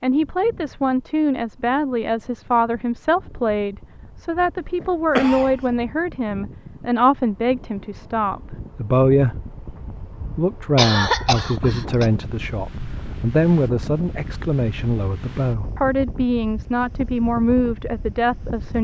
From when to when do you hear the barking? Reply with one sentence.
You can't hear the barking here.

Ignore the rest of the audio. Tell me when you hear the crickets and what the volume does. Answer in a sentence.
You can't hear the crickets here.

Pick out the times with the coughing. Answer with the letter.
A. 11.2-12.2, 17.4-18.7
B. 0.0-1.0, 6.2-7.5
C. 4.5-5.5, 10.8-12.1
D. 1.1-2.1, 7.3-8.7
C.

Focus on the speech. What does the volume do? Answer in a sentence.
The volume of the speech stays about the same.